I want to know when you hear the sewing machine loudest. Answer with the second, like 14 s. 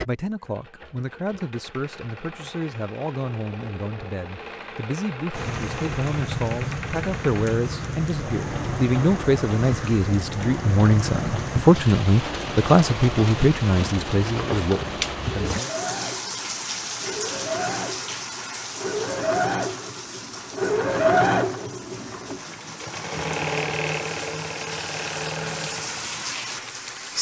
21 s.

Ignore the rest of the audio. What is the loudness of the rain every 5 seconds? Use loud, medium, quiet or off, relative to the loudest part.
off, loud, loud, loud, medium, loud.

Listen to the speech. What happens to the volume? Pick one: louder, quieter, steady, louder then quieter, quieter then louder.
louder.